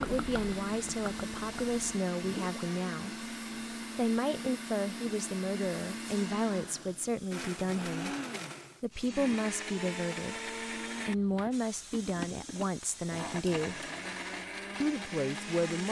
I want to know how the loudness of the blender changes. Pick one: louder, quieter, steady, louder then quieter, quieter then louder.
steady.